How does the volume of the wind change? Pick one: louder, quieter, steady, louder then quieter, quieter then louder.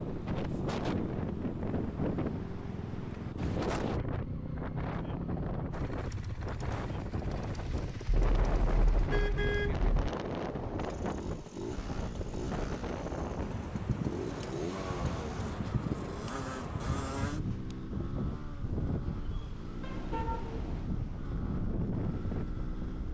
steady.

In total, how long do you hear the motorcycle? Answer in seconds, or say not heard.
23 s.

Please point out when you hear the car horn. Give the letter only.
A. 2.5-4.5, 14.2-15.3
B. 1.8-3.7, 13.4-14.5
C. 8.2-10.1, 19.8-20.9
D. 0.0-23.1
C.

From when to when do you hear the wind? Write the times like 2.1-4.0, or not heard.
0.0-23.1.